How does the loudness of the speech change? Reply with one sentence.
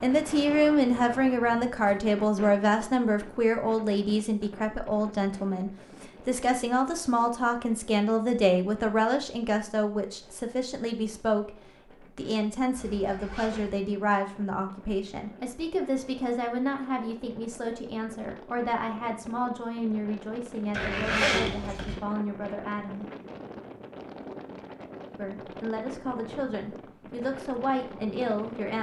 The volume of the speech goes down.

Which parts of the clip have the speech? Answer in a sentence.
You can hear the speech from 0.0 to 11.6 s, from 12.2 to 23.1 s and from 25.1 to 28.7 s.